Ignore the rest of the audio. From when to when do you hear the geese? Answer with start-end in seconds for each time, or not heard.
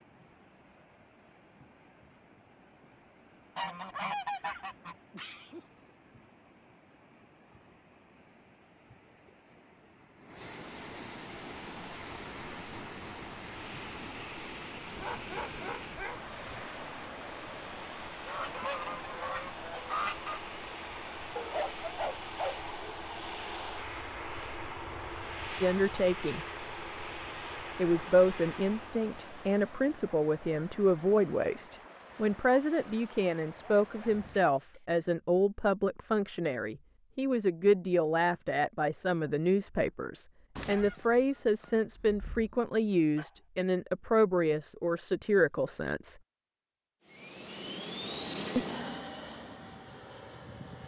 3.5-5.0, 18.2-20.4, 40.5-42.6.